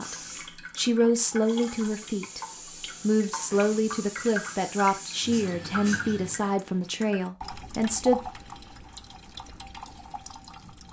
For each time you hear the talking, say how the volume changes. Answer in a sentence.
The talking can be heard briefly from 0.0 to 2.4 s; and from 3.0 to 8.2 s, at a steady volume.